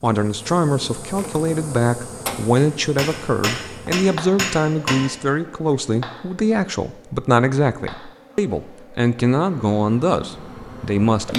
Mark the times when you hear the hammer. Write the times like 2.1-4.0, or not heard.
2.5-5.0.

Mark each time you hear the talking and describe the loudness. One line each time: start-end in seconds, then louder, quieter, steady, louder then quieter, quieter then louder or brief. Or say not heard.
0.0-11.3 steady.